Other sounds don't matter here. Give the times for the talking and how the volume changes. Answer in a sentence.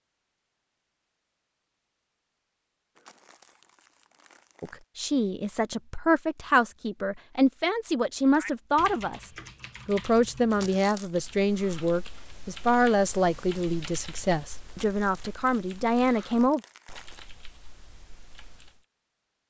The talking can be heard from 4.6 to 16.6 s, at a steady volume.